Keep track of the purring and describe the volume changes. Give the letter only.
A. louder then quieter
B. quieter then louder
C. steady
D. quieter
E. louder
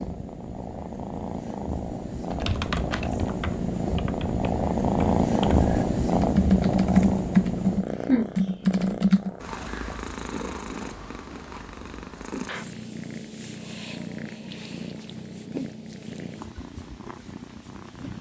A.